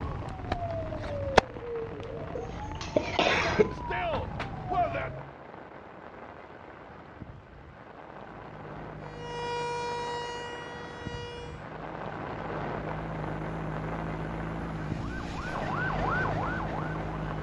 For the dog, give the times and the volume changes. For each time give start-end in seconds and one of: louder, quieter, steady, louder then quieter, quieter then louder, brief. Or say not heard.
not heard.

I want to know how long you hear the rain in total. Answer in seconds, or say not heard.
17 s.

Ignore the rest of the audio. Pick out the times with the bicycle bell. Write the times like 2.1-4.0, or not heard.
not heard.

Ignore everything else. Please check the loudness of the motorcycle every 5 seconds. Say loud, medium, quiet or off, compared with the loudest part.
off, medium, loud, loud.